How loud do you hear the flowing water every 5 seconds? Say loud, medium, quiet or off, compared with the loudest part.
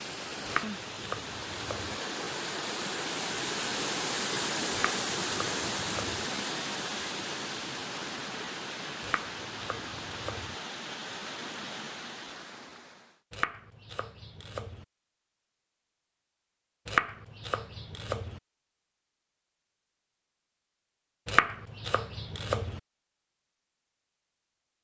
loud, loud, medium, off, off.